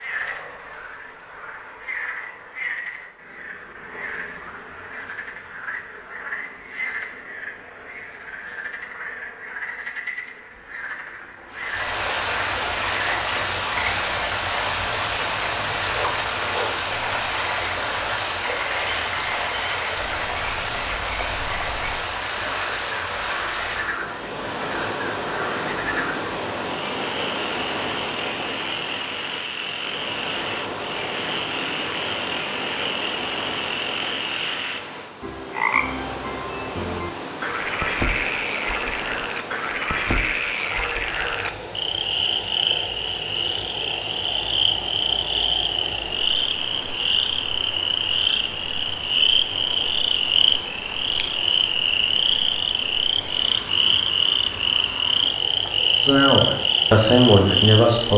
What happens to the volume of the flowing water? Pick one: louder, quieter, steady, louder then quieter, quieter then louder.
quieter.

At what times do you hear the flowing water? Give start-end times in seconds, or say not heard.
11.5-58.1.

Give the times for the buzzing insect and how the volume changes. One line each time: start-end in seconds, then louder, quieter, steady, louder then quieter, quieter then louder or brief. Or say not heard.
not heard.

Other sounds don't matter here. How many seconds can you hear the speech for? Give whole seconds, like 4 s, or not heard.
2 s.